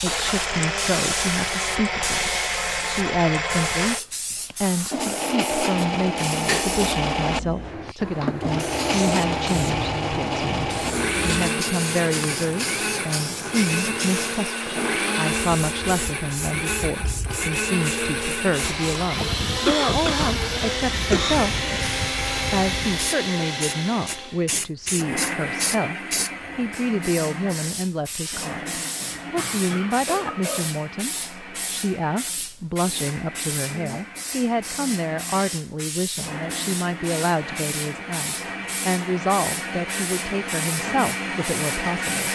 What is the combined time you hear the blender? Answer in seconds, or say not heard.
42 s.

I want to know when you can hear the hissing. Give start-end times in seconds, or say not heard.
0.0-42.3.